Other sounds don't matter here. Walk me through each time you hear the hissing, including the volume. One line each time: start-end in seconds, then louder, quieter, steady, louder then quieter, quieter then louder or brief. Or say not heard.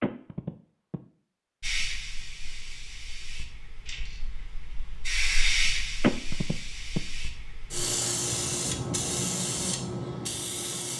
1.6-10.9 louder.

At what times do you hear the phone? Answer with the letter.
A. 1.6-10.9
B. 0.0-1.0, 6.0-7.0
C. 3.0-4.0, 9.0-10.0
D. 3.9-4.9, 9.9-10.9
B.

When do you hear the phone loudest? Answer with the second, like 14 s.
6 s.